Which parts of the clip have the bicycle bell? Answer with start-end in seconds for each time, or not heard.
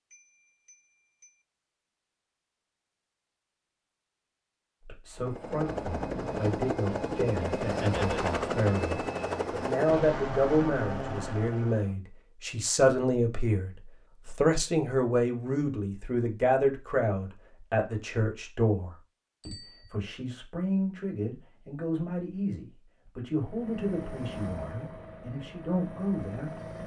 0.1-1.4, 19.4-19.9.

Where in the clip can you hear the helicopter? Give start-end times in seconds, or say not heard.
5.2-11.9, 23.3-26.8.